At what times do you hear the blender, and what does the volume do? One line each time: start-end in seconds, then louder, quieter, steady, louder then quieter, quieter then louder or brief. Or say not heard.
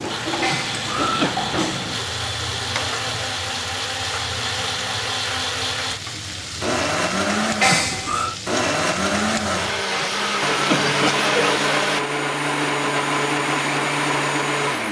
0.0-14.8 louder.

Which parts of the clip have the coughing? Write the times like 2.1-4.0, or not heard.
0.4-1.4, 7.6-8.3, 9.9-11.6.